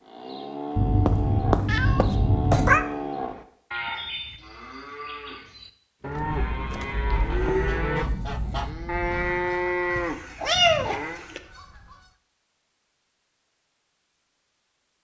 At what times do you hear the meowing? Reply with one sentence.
The meowing can be heard from 0.8 to 2.9 s and from 9.9 to 11.4 s.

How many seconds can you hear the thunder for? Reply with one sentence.
You can hear the thunder for 3 seconds altogether.